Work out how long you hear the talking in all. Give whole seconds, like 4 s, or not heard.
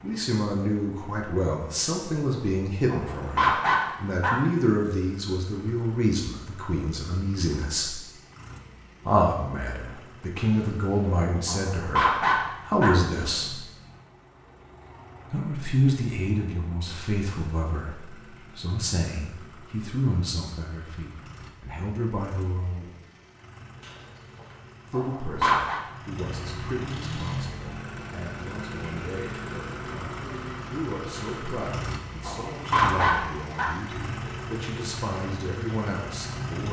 31 s.